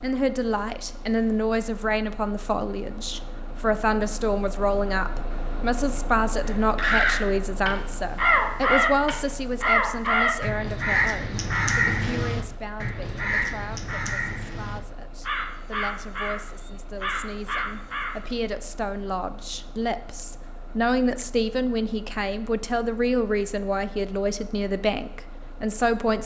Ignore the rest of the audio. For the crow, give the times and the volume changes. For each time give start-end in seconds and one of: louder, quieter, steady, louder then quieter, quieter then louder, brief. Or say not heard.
6.5-18.1 quieter.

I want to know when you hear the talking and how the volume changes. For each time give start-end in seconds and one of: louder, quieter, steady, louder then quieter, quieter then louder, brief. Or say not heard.
0.0-26.2 quieter then louder.